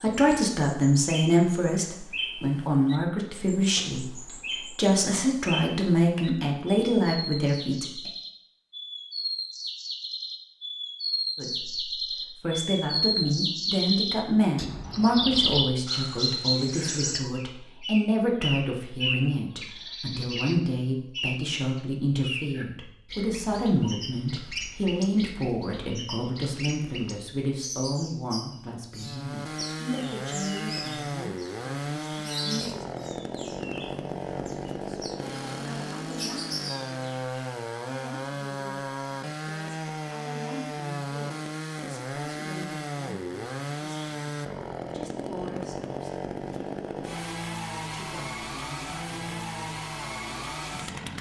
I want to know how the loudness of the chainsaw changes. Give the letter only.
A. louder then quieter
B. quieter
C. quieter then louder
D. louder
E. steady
E.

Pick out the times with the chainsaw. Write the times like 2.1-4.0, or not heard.
28.9-51.1.